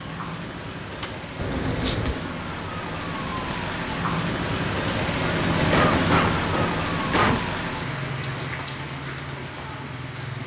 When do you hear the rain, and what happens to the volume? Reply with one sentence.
The rain can be heard from 0.0 to 10.4 s, getting louder then quieter.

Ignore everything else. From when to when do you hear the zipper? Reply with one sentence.
You can't hear the zipper here.